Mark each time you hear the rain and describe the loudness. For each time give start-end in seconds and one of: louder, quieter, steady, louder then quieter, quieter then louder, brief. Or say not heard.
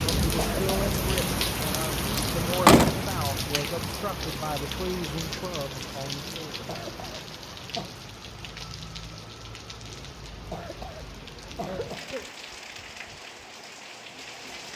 0.0-14.7 quieter.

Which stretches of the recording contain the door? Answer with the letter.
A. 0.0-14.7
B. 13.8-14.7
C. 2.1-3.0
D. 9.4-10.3
C.